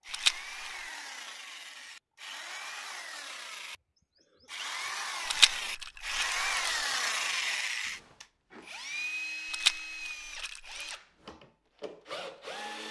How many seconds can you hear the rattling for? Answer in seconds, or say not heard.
3 s.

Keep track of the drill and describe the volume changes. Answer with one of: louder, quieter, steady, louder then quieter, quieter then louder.
louder then quieter.